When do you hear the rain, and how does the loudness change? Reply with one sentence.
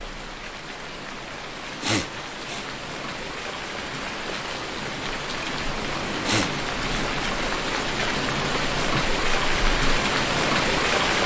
The rain can be heard from 0.0 to 11.2 s, getting louder.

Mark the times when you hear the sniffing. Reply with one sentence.
The sniffing can be heard from 1.8 to 2.6 s and from 6.2 to 7.1 s.